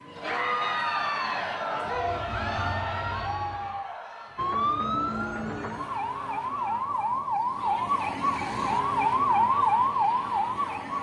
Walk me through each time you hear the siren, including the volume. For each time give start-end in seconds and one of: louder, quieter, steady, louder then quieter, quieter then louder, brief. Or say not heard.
4.3-10.9 louder.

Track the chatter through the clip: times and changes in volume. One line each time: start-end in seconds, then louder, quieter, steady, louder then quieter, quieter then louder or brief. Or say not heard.
0.1-10.9 quieter.